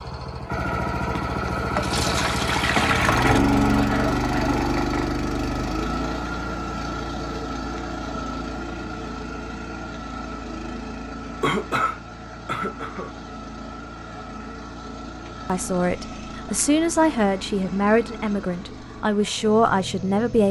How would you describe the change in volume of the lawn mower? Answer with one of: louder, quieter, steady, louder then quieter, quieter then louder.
quieter.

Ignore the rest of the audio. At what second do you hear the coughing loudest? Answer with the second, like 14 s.
12 s.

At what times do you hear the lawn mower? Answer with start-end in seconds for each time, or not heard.
0.0-20.4.